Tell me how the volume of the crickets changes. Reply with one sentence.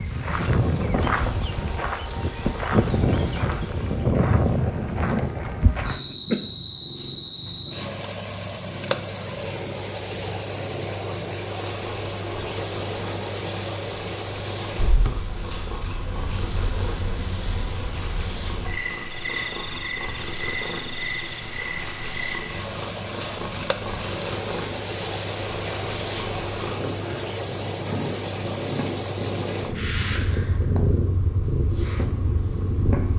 The loudness of the crickets stays about the same.